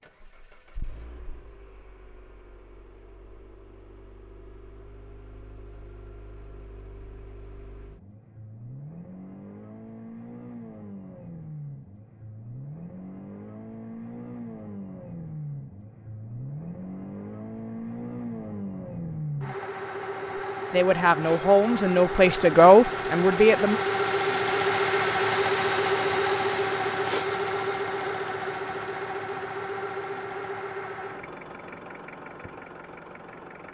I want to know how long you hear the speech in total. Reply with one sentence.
The speech can be heard for 3 seconds in total.